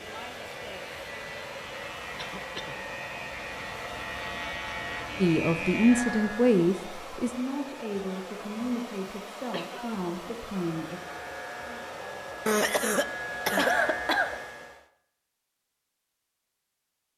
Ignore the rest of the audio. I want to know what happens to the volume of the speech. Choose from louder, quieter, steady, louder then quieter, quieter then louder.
quieter.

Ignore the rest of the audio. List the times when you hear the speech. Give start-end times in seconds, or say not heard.
5.2-11.0.